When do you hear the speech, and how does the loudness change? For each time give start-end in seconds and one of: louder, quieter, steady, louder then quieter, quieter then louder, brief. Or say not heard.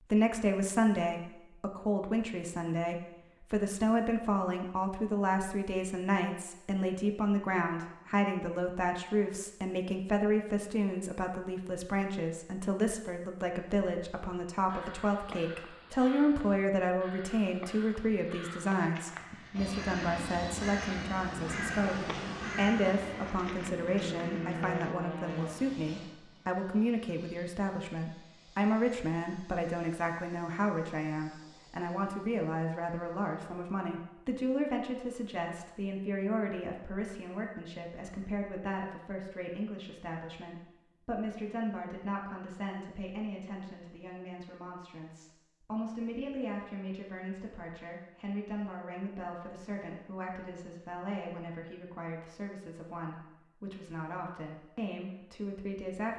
0.1-56.1 quieter.